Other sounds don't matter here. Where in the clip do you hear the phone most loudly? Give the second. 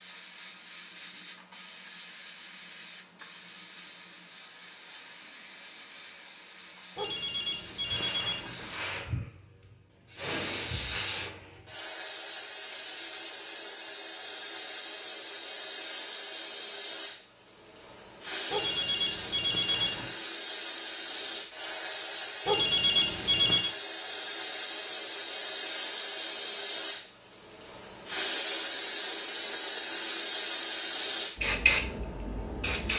23 s.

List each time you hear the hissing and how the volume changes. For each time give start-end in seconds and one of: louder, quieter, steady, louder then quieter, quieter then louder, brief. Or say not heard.
0.0-32.9 louder.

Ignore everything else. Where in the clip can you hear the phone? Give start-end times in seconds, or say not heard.
7.0-8.8, 18.5-20.1, 22.4-23.8.